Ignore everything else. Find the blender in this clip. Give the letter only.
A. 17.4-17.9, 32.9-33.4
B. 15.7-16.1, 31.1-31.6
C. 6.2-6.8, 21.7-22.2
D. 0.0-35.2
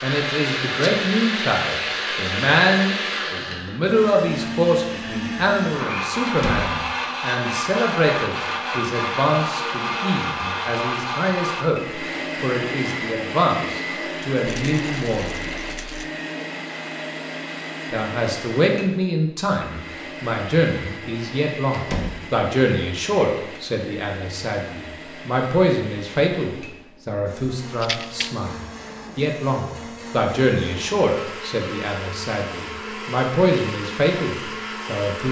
D.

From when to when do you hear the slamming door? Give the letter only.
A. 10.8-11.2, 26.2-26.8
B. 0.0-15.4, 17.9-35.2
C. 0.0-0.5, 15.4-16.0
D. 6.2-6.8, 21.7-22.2
D.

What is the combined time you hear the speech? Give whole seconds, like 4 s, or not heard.
33 s.